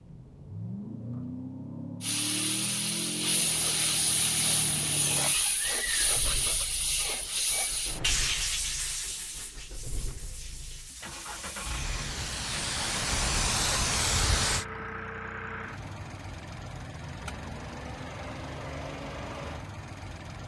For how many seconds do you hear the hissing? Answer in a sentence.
The hissing can be heard for 13 seconds in total.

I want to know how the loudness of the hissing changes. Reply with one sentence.
The volume of the hissing goes down, then up.